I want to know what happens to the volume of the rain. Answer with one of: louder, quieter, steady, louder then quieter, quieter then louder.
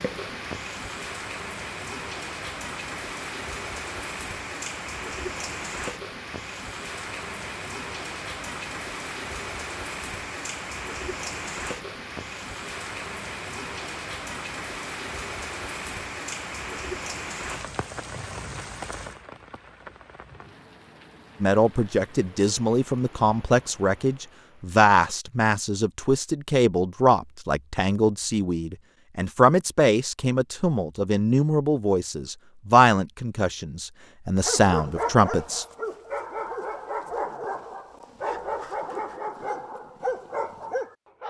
quieter.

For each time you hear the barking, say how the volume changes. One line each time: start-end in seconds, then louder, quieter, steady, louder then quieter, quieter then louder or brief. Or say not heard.
34.4-41.2 steady.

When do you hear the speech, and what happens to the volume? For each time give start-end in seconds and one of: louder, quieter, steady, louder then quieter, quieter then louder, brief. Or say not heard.
21.4-35.6 steady.